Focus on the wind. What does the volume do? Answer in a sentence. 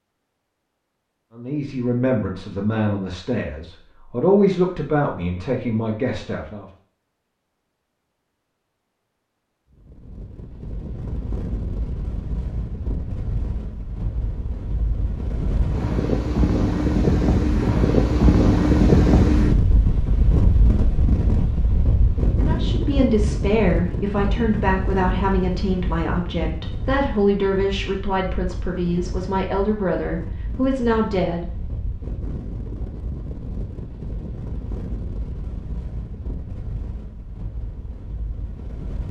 The loudness of the wind goes up, then down.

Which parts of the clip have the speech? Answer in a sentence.
The speech can be heard from 1.4 to 6.7 s and from 22.4 to 31.4 s.